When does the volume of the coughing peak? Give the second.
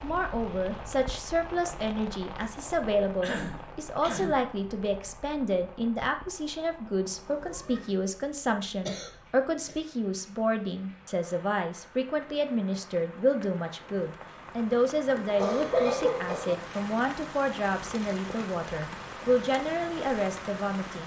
16 s.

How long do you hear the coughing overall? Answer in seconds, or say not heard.
3 s.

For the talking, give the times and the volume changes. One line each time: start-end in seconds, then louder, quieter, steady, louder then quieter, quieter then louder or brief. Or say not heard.
0.0-21.0 steady.